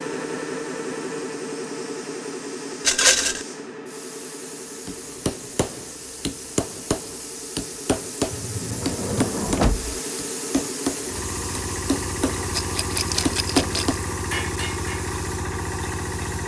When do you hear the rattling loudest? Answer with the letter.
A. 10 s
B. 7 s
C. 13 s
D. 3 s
D.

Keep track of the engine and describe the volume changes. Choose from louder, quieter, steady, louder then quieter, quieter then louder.
quieter then louder.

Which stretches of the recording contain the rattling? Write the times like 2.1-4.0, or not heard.
2.8-3.5, 12.5-14.0.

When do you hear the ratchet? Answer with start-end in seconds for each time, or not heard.
not heard.